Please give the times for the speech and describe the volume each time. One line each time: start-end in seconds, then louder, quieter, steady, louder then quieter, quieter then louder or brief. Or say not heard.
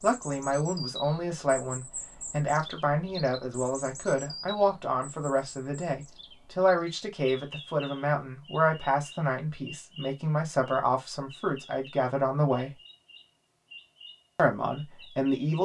0.0-12.8 steady
14.3-15.5 brief.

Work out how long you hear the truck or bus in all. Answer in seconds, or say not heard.
not heard.